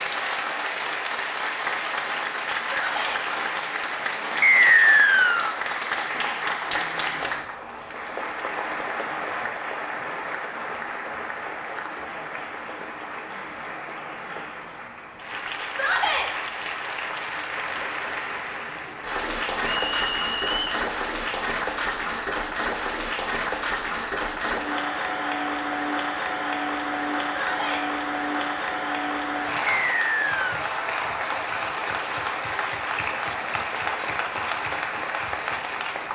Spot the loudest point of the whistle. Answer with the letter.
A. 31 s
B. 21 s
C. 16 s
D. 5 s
D.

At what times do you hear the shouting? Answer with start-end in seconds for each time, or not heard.
2.6-3.2, 15.7-16.3, 27.3-27.9.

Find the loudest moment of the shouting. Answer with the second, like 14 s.
16 s.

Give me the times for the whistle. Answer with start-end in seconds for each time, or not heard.
4.4-5.5, 19.9-20.9, 29.6-30.6.